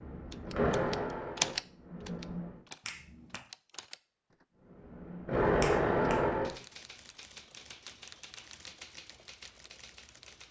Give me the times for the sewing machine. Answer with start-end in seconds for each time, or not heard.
0.0-2.6, 4.8-6.5.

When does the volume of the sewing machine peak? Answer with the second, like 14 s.
6 s.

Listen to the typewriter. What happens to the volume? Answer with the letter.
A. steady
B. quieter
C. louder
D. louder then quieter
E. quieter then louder
B.